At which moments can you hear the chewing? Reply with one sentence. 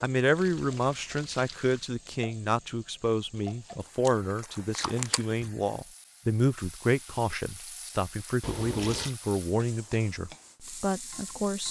The chewing can be heard from 3.3 to 5.5 s.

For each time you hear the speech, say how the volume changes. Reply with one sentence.
The speech can be heard from 0.0 to 11.6 s, at a steady volume.